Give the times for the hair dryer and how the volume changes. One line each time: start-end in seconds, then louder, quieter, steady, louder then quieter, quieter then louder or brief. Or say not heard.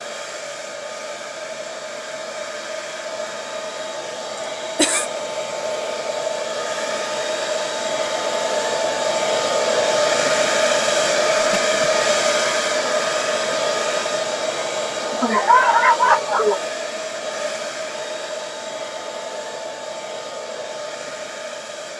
0.0-21.9 louder then quieter.